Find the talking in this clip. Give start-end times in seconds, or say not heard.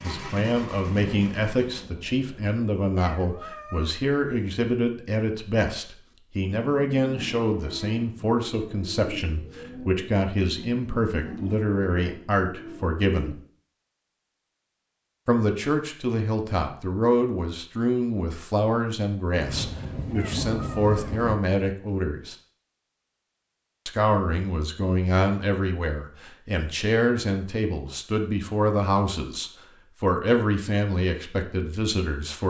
0.0-13.3, 15.2-22.4, 23.9-32.4.